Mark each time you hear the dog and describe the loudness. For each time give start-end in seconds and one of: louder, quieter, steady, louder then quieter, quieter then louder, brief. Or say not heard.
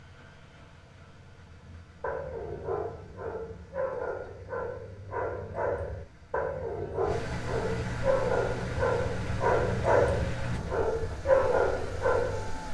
1.6-12.5 louder.